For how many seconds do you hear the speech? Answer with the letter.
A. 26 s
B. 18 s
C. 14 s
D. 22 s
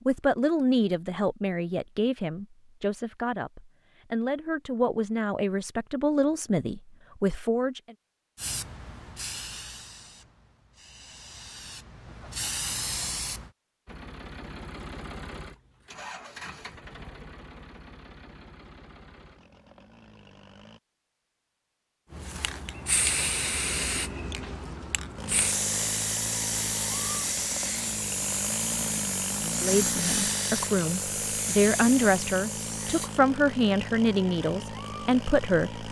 C.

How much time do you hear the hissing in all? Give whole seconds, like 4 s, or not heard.
16 s.